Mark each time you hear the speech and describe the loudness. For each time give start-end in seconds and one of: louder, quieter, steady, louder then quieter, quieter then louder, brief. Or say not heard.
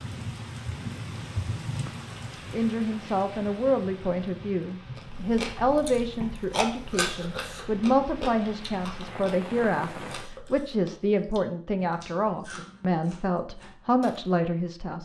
2.5-15.0 steady.